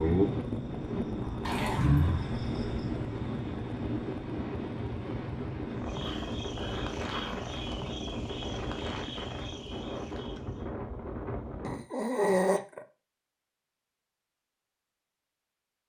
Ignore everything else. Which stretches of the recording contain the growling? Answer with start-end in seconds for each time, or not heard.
1.4-2.0, 6.0-7.5, 11.6-12.8.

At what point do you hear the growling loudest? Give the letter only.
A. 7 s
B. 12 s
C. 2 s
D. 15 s
B.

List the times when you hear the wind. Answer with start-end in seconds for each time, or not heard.
0.0-11.8.